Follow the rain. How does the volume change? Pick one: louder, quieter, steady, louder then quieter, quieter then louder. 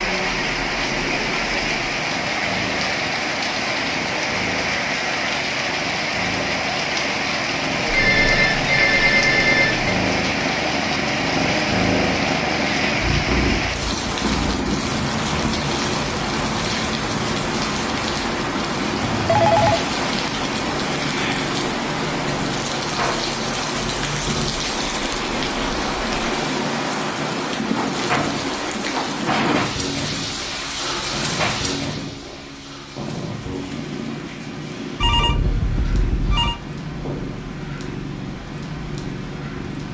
quieter.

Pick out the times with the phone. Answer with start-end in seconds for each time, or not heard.
7.8-9.9, 19.0-19.9, 35.0-36.6.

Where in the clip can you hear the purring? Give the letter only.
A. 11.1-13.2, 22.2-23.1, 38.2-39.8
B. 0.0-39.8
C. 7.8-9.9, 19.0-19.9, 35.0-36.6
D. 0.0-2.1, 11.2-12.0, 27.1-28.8
B.